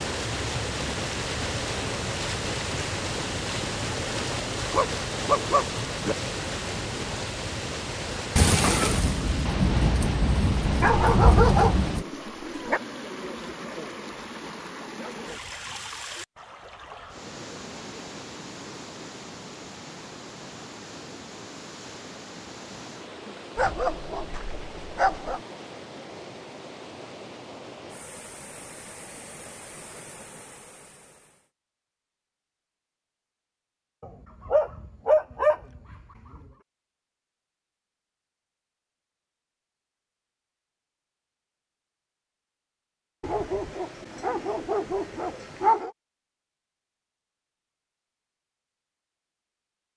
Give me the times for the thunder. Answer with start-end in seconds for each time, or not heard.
8.3-12.1.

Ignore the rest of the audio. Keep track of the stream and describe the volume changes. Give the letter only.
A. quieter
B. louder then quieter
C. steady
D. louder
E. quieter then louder
A.